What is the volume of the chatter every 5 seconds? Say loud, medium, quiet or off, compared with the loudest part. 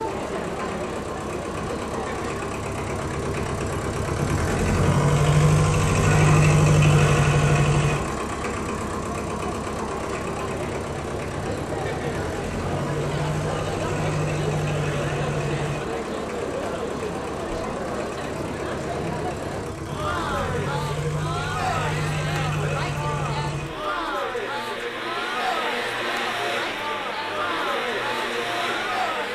loud, medium, loud, loud, loud, loud.